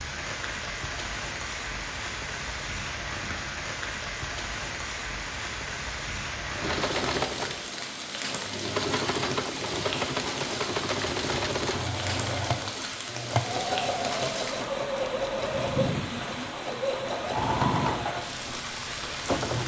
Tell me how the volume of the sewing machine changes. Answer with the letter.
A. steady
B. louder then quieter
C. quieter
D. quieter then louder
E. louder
A.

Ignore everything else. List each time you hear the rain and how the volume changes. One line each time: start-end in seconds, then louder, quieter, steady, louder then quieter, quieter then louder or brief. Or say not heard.
0.0-19.6 steady.